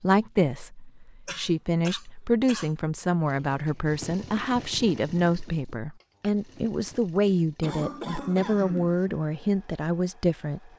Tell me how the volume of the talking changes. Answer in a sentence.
The volume of the talking stays about the same.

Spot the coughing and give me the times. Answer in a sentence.
You can hear the coughing from 1.2 to 2.8 s and from 7.6 to 9.0 s.